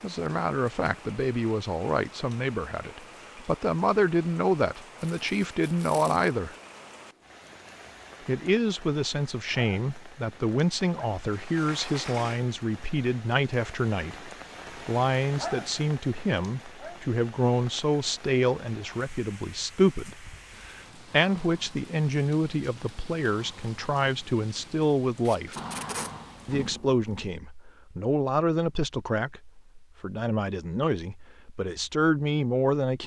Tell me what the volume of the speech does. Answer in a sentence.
The loudness of the speech stays about the same.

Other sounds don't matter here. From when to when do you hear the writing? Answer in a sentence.
You can't hear the writing here.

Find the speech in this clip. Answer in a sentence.
You can hear the speech from 0.0 to 6.5 s, from 8.2 to 25.6 s and from 26.4 to 33.0 s.